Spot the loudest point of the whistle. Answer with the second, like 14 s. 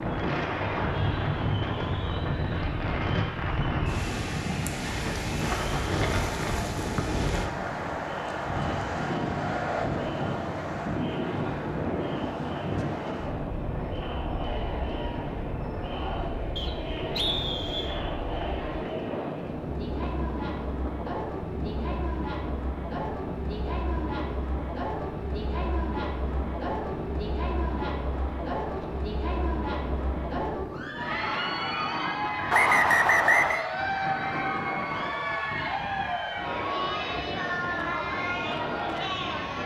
33 s.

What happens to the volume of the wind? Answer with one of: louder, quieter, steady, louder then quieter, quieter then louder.
quieter.